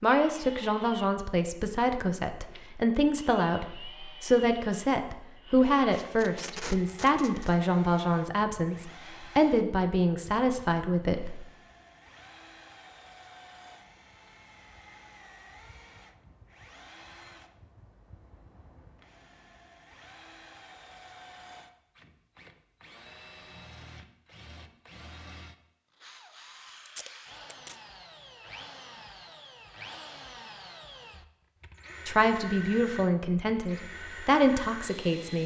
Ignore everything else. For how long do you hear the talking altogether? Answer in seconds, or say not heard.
15 s.